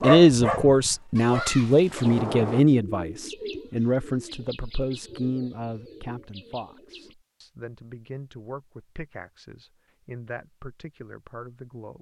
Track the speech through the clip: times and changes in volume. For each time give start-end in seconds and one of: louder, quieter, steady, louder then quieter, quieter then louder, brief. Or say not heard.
0.0-11.9 quieter.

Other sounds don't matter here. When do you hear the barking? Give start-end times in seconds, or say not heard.
0.0-2.0.